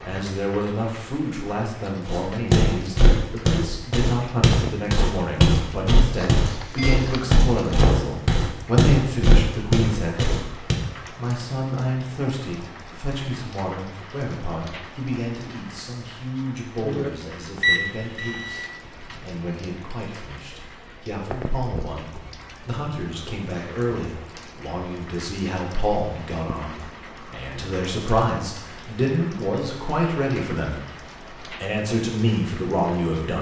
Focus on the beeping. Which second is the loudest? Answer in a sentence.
The loudest moment of the beeping is at 18 seconds.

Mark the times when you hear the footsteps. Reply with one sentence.
You can hear the footsteps from 2.0 to 10.8 s.